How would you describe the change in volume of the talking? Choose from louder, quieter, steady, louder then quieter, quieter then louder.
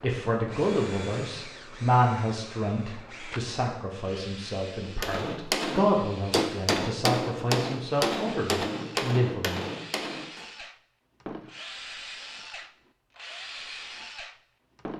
quieter then louder.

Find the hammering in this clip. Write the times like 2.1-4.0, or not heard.
4.8-10.4.